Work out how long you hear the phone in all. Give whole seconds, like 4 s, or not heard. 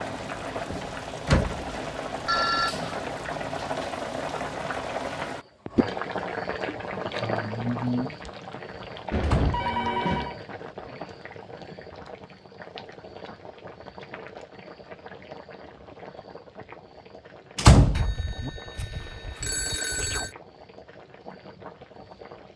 5 s.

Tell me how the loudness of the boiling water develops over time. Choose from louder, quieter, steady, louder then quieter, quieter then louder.
quieter.